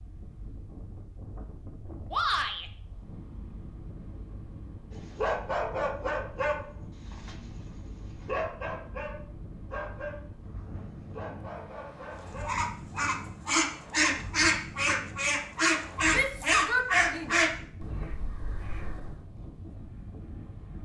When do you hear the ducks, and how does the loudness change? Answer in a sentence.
The ducks can be heard from 12.4 to 19.2 s, getting quieter.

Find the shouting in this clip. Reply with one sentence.
The shouting can be heard from 2.1 to 2.7 s and from 16.1 to 17.4 s.